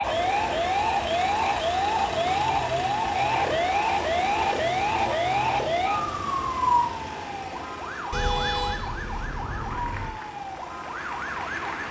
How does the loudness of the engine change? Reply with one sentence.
The loudness of the engine goes down.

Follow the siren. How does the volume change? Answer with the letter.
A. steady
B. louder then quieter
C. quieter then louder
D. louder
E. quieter
E.